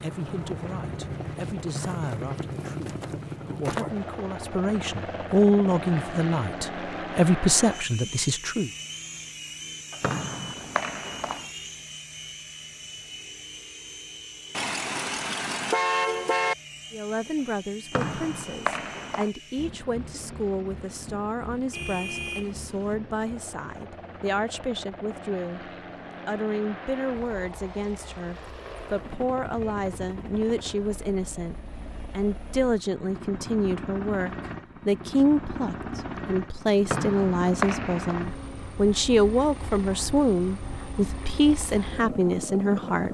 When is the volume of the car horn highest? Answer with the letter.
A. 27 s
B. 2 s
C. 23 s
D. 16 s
D.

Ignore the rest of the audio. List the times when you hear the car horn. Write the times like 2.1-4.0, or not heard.
14.5-16.6, 21.7-22.9.